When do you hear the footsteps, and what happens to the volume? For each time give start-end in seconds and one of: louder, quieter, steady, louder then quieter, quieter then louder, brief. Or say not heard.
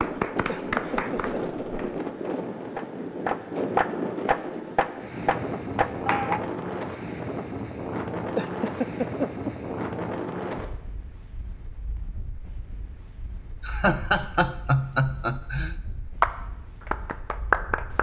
not heard.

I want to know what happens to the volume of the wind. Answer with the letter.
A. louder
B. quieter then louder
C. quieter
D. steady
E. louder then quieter
C.